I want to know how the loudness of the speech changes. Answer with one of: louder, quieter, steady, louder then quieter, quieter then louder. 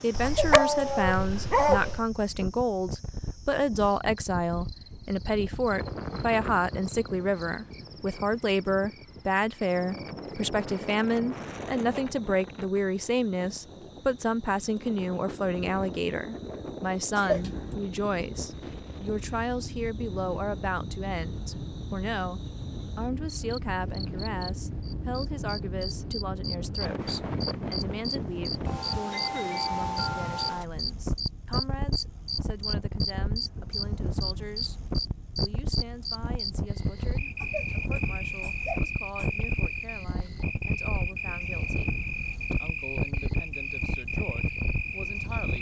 quieter.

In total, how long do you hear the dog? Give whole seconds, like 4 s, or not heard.
2 s.